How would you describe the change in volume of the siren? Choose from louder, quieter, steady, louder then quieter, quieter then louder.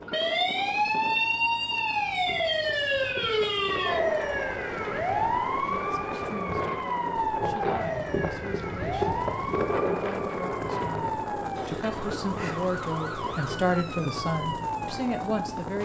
quieter.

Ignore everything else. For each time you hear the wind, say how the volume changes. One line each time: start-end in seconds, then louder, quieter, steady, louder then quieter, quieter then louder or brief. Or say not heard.
0.0-15.6 louder then quieter.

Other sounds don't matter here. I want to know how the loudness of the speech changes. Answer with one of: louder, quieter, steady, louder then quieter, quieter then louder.
louder.